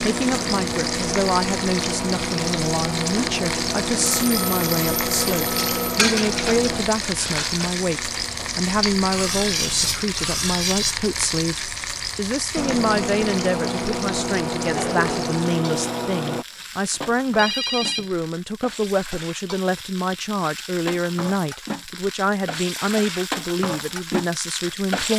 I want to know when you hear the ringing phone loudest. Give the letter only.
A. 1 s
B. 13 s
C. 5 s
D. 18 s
D.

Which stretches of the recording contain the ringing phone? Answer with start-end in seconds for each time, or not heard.
4.0-6.0, 16.9-18.2.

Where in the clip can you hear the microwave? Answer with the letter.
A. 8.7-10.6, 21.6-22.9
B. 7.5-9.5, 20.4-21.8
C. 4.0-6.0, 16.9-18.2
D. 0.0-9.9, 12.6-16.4
D.